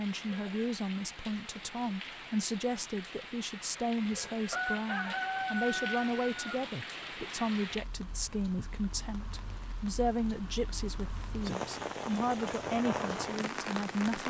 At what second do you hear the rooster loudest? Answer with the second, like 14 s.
5 s.